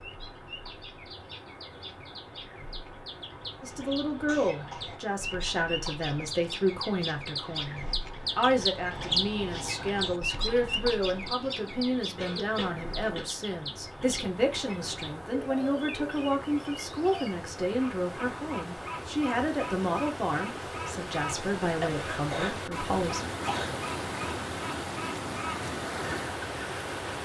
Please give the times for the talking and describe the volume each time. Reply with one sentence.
The talking can be heard from 3.6 to 23.2 s, at a steady volume.